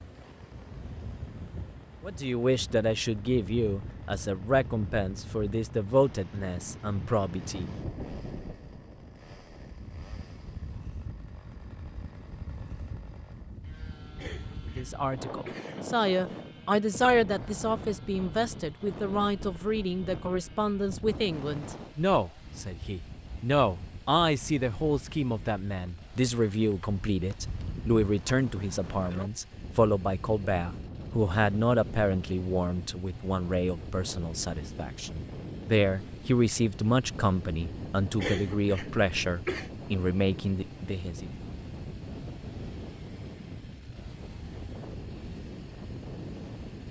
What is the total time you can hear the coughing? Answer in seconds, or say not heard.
3 s.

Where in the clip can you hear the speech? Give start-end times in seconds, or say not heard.
2.0-7.7, 14.8-41.3.